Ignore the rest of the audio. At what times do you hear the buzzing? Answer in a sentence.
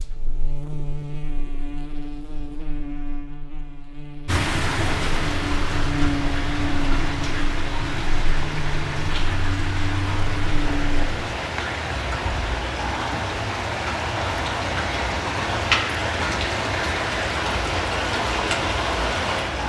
You can hear the buzzing from 0.0 to 11.1 s.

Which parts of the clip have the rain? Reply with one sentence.
The rain can be heard from 4.2 to 19.6 s.